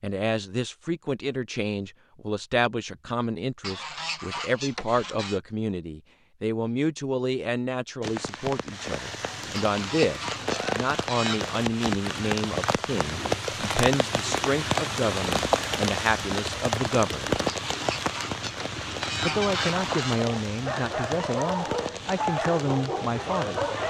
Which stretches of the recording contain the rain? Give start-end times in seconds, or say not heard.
8.0-23.8.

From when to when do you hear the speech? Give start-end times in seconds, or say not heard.
0.0-17.4, 19.2-23.7.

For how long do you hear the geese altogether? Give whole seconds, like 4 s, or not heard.
6 s.